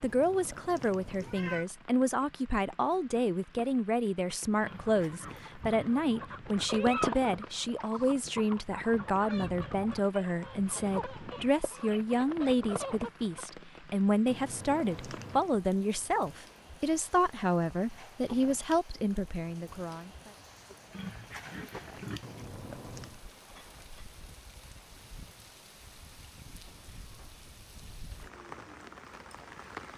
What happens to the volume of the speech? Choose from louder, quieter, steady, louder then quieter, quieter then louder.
steady.